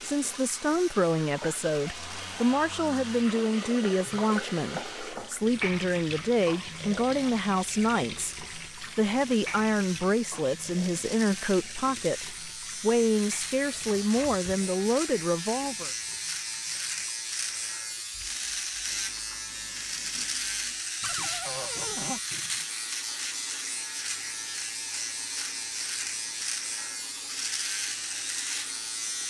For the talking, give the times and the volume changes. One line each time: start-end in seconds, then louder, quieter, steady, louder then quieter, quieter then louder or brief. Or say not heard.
0.0-15.9 steady.